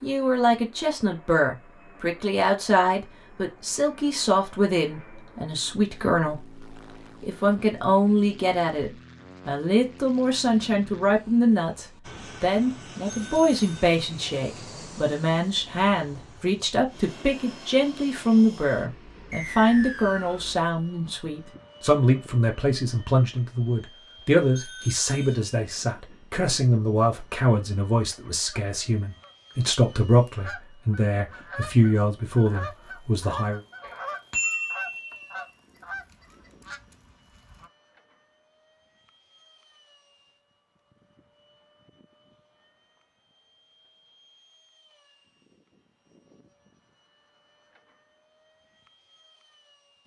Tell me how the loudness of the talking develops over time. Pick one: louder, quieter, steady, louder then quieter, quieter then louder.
steady.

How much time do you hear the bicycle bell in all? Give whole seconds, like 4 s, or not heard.
3 s.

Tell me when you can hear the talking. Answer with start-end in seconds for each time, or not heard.
0.0-33.6.